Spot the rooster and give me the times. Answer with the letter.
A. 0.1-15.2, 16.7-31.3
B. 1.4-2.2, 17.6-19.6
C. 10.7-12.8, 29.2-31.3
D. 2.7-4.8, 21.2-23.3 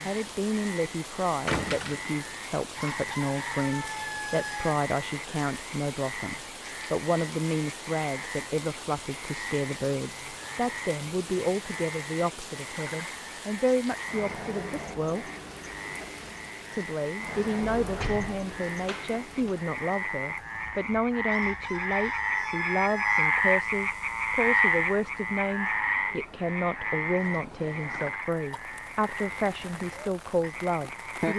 D.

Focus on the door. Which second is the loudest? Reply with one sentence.
The volume of the door peaks at 2 seconds.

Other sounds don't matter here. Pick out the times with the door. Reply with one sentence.
The door can be heard from 1.4 to 2.2 s and from 17.6 to 19.6 s.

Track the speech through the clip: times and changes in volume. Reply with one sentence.
The speech can be heard from 0.1 to 15.2 s, at a steady volume; and from 16.7 to 31.3 s, at a steady volume.